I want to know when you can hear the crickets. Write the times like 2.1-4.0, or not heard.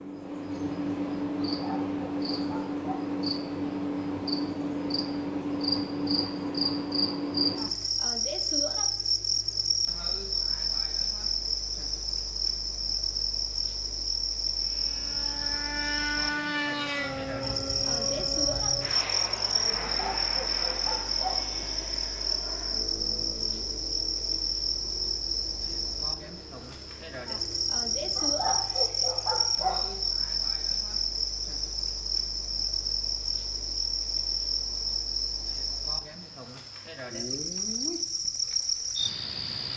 0.0-39.7.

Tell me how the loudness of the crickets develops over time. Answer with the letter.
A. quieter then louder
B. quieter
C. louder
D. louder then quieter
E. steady
E.